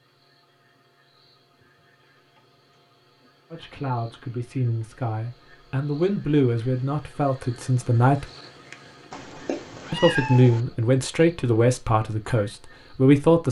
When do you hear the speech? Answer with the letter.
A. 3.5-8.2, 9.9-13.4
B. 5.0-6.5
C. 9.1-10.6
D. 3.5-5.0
A.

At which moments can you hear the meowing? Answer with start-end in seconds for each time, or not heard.
9.1-10.6.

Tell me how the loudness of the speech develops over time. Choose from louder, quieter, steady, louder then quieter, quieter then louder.
louder.